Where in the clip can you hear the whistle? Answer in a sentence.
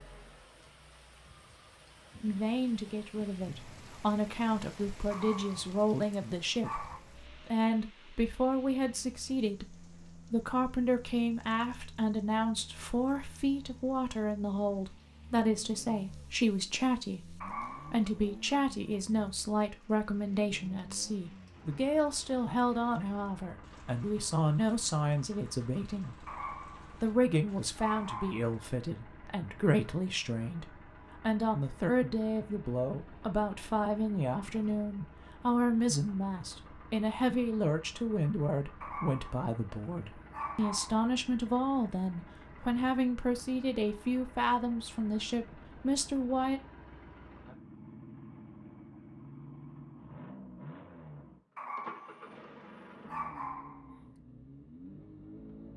The whistle can't be heard in this clip.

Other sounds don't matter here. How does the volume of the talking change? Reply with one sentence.
The loudness of the talking stays about the same.